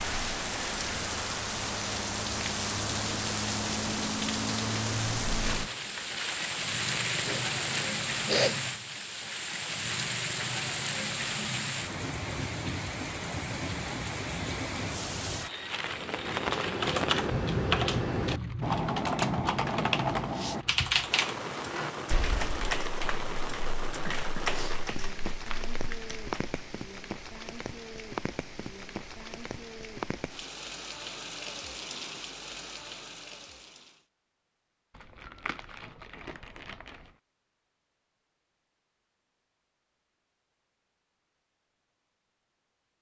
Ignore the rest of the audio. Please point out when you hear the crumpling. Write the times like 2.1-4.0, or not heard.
5.4-7.8, 25.4-26.2, 35.0-37.1.